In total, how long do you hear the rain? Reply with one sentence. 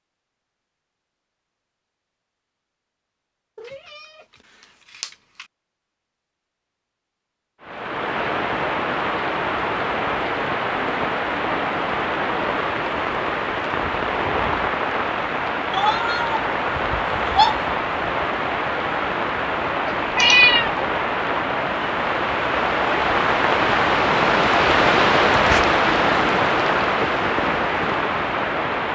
The rain can be heard for 21 seconds in total.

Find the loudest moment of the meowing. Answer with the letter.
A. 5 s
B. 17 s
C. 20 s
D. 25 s
C.